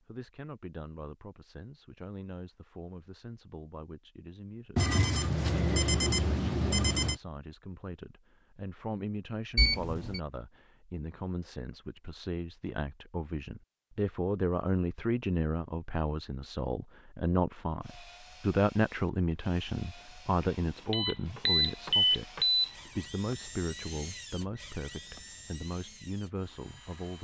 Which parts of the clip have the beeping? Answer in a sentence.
You can hear the beeping from 4.8 to 7.2 s, from 9.6 to 10.2 s and from 20.4 to 22.8 s.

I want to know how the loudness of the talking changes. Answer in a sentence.
The loudness of the talking goes up, then down.